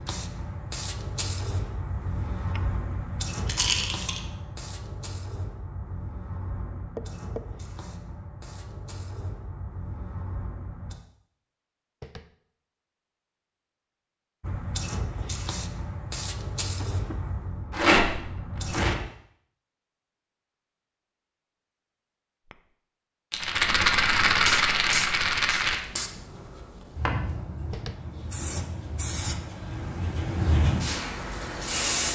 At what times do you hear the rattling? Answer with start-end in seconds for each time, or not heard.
3.5-4.2, 17.7-18.9, 23.3-25.8.